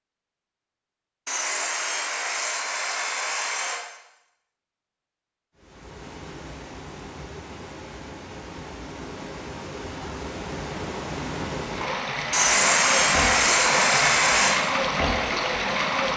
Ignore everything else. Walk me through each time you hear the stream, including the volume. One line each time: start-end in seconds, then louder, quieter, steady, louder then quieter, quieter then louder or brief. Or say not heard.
5.5-16.1 louder.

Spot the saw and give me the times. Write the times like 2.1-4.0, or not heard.
1.2-3.8, 12.3-14.6.